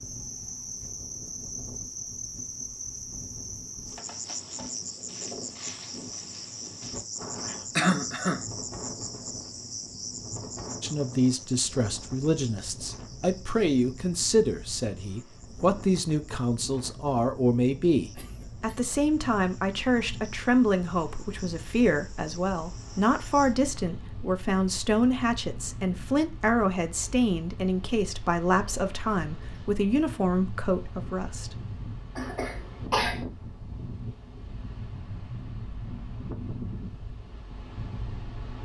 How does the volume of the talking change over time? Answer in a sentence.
The loudness of the talking stays about the same.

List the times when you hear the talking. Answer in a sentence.
The talking can be heard from 10.8 to 31.6 s.